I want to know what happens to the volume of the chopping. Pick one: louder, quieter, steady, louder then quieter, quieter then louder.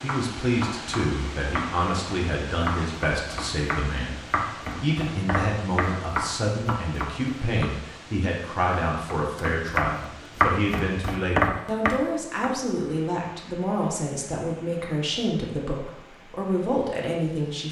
louder.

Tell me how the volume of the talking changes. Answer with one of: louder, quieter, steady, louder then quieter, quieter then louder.
steady.